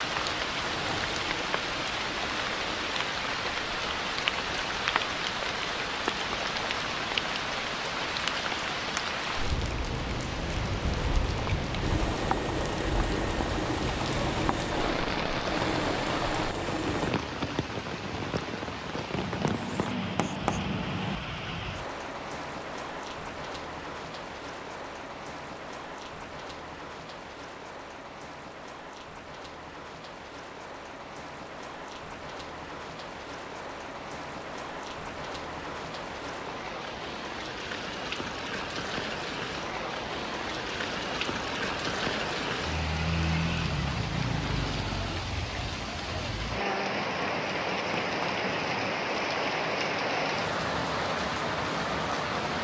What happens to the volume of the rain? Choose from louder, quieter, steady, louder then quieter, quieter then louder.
quieter then louder.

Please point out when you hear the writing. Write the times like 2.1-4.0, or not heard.
19.1-21.2, 47.0-48.9.